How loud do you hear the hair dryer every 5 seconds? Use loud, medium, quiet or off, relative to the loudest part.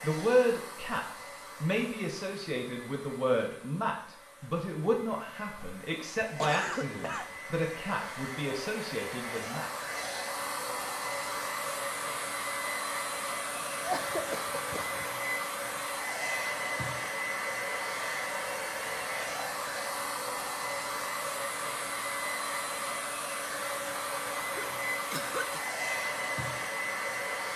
quiet, medium, loud, loud, loud, loud.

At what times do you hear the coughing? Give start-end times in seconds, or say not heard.
6.2-7.4, 13.6-15.1, 24.5-25.6.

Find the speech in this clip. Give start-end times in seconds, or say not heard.
0.0-9.7.